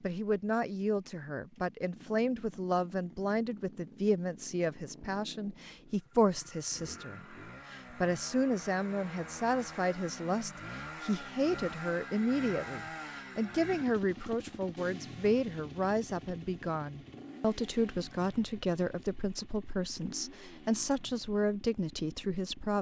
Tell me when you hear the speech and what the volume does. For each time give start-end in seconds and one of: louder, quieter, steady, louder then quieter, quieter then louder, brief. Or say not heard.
0.0-22.7 steady.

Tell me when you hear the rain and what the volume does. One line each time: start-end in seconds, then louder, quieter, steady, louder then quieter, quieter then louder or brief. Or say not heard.
not heard.